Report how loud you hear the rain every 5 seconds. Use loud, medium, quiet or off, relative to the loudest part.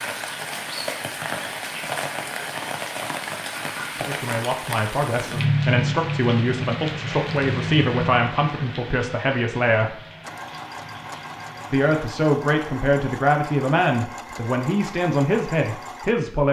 loud, loud, quiet, off.